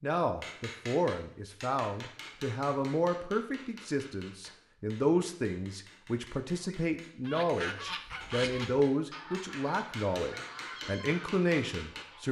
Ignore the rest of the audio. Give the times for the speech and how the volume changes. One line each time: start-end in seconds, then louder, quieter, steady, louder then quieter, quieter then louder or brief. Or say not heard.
0.0-12.2 steady.